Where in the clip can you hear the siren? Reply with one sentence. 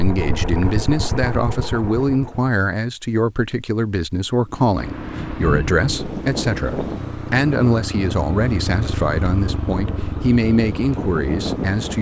You can't hear the siren here.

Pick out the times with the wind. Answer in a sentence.
You can hear the wind from 4.8 to 11.9 s.